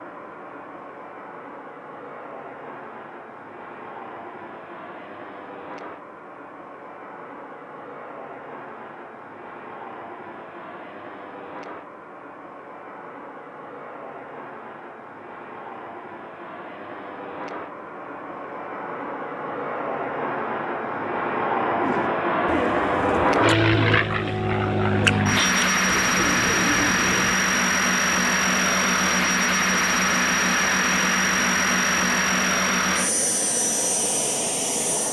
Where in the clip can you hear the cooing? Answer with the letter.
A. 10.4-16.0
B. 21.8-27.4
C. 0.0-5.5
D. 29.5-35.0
B.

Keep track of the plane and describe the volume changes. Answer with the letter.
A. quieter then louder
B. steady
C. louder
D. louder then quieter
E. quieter
C.